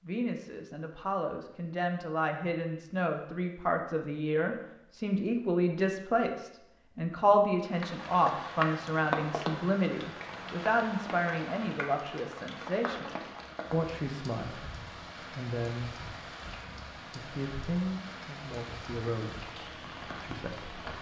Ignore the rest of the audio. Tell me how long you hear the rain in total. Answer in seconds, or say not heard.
13 s.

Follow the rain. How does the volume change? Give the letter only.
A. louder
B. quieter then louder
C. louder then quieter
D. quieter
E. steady
D.